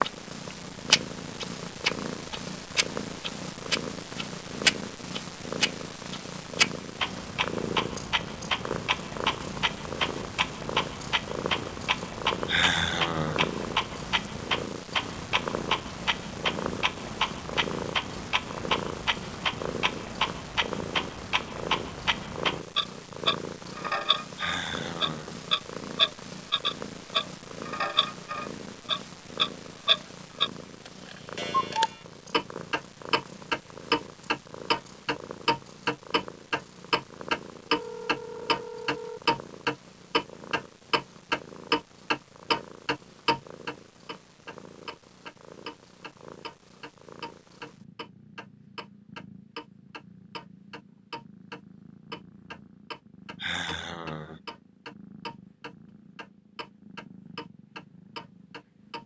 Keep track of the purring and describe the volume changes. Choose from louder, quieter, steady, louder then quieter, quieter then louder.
quieter.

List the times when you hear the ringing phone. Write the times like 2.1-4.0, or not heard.
37.6-39.2.